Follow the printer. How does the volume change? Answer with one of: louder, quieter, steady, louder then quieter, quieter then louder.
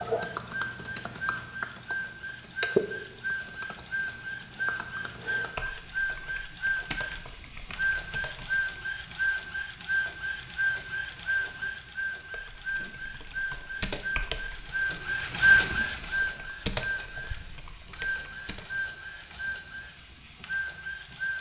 louder then quieter.